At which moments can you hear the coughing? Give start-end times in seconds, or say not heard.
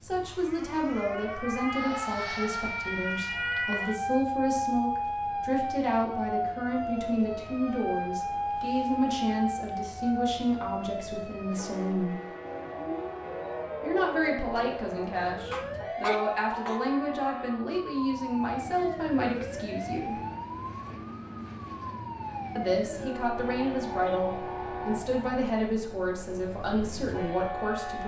15.5-16.8.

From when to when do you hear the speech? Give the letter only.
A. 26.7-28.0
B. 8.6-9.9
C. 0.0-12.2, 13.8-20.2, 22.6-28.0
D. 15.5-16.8
C.